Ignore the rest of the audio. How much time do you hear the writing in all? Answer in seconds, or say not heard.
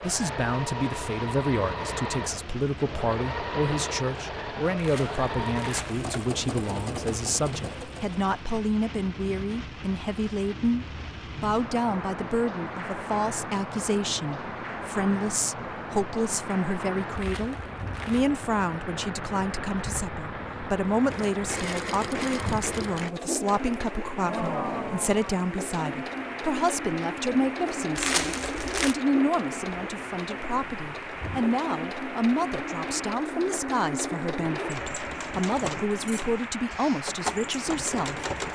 not heard.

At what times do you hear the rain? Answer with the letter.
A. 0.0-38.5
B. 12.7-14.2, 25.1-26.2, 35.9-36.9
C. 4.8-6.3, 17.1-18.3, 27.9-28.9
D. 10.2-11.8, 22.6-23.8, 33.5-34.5
A.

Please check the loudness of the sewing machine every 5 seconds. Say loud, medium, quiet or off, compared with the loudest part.
loud, loud, off, off, loud, loud, loud, loud.